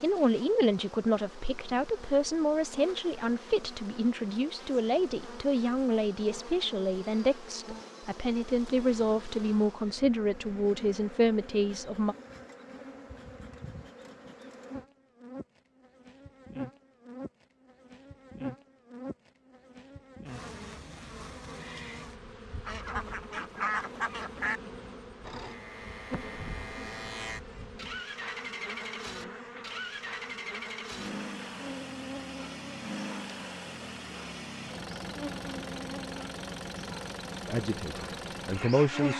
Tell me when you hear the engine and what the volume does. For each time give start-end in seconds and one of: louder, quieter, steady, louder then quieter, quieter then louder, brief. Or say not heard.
25.2-39.1 steady.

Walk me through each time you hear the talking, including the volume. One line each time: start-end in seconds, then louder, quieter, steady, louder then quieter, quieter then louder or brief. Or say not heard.
0.0-12.2 steady
37.5-39.1 brief.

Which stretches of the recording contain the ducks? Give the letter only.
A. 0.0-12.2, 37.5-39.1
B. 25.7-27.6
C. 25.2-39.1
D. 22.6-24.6
D.